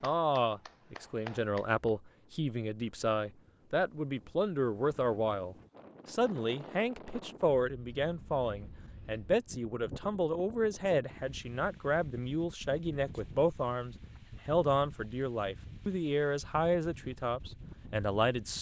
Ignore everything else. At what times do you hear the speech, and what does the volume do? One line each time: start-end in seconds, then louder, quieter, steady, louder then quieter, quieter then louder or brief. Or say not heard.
0.0-18.5 steady.